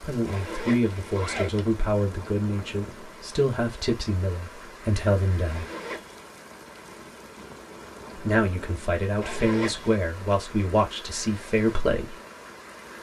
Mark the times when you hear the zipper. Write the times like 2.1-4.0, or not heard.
0.2-1.8, 5.5-6.2, 9.2-10.0.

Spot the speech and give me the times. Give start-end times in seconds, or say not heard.
0.0-5.7, 8.2-12.2.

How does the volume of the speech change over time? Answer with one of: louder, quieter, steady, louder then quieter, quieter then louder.
steady.